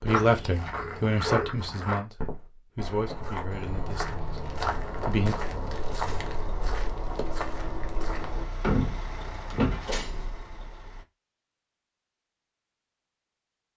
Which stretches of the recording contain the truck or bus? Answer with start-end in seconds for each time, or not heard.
3.5-11.1.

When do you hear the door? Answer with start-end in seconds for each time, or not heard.
8.6-10.0.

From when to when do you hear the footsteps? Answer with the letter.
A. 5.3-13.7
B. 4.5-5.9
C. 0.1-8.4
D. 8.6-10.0
C.